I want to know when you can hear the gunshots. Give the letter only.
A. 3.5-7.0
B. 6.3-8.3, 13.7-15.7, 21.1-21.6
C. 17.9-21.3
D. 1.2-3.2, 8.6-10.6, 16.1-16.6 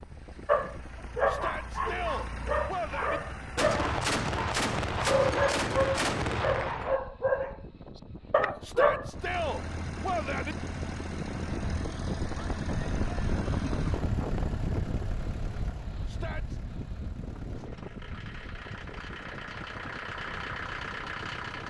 A.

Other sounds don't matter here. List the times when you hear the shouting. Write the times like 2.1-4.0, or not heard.
1.2-3.2, 8.6-10.6, 16.1-16.6.